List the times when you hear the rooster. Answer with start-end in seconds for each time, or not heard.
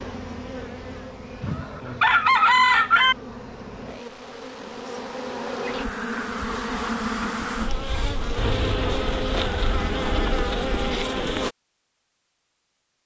1.4-3.1.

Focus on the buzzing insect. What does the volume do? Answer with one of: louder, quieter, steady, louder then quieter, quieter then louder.
louder.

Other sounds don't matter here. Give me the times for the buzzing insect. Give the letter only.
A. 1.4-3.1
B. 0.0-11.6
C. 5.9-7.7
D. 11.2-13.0
B.